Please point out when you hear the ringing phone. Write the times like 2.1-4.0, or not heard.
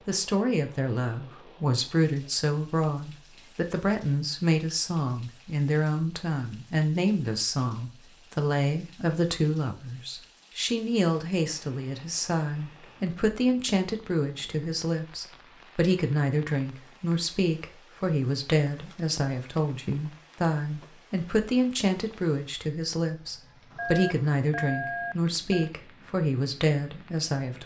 23.8-25.7.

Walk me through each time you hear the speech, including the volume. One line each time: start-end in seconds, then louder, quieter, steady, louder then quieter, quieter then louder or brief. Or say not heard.
0.1-27.6 steady.